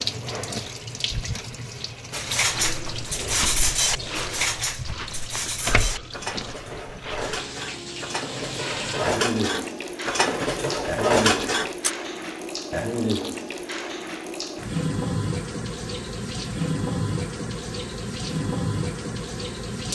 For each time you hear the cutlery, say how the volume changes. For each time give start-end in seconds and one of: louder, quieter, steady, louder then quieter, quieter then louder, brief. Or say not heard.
2.1-11.9 quieter then louder.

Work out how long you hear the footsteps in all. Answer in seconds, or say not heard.
5 s.